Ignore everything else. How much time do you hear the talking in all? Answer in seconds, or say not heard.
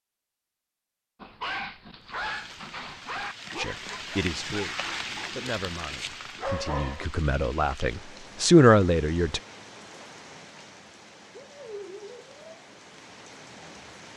6 s.